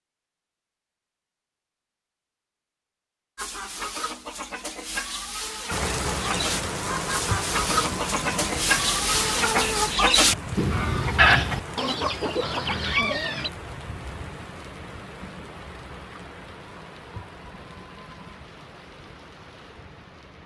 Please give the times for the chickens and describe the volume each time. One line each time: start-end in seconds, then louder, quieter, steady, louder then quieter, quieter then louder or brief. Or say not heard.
3.4-13.5 louder.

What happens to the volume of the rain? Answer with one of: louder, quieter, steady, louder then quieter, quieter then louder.
quieter.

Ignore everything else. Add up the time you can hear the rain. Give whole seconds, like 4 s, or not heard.
15 s.